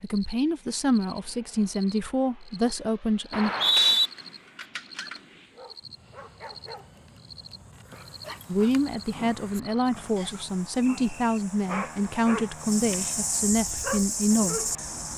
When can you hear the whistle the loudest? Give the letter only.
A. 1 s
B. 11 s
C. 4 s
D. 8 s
C.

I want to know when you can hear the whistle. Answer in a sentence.
The whistle can be heard from 3.3 to 4.1 s and from 10.2 to 11.4 s.